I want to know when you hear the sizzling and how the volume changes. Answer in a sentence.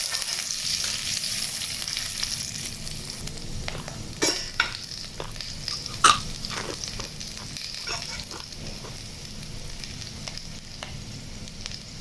You can hear the sizzling from 0.0 to 11.9 s, getting quieter.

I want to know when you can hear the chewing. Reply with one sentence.
You can hear the chewing from 3.7 to 8.9 s.